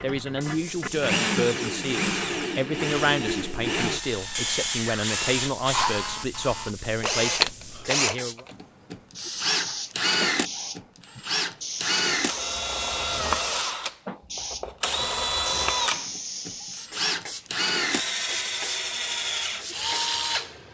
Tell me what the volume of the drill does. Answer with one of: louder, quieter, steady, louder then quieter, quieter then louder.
steady.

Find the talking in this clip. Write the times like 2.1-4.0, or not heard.
0.0-8.4.